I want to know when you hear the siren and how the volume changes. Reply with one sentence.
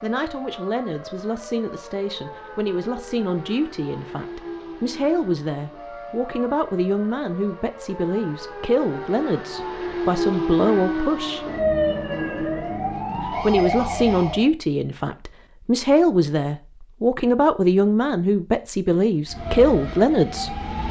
The siren can be heard from 0.0 to 14.4 s, getting louder; and briefly from 19.2 to 20.8 s.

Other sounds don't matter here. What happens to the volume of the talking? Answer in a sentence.
The volume of the talking goes up.